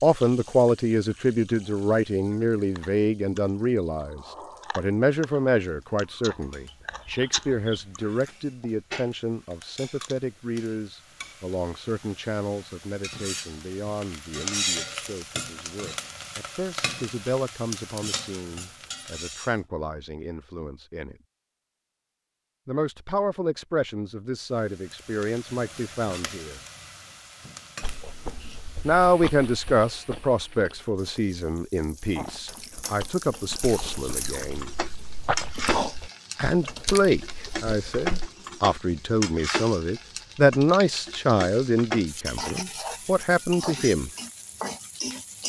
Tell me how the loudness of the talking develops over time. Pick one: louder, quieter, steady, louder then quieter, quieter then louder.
quieter then louder.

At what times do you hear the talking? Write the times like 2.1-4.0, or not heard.
0.0-21.1, 22.6-26.6, 28.9-34.7, 36.4-44.1.